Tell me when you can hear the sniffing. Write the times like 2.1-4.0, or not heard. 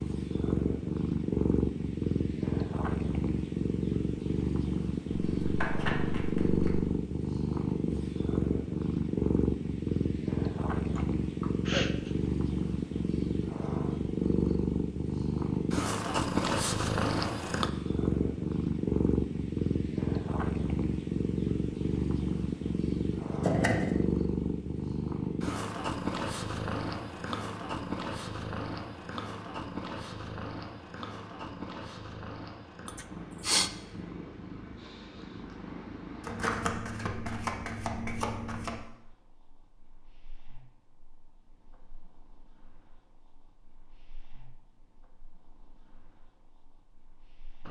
10.9-12.1, 32.9-33.7.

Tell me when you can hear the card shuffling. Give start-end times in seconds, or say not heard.
5.1-6.8, 23.4-24.0, 36.2-38.8.